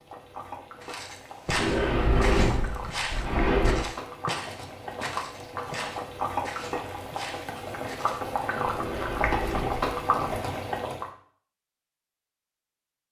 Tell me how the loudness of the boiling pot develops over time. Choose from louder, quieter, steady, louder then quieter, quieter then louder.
louder.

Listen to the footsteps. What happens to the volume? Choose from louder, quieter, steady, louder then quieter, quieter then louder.
quieter.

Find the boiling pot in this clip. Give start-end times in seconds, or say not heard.
0.0-11.1.